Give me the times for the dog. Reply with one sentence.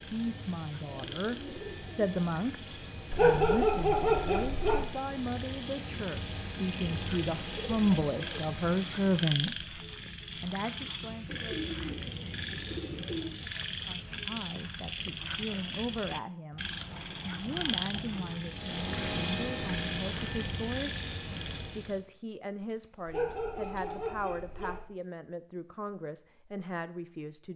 The dog can be heard from 3.1 to 4.8 s and from 23.1 to 24.8 s.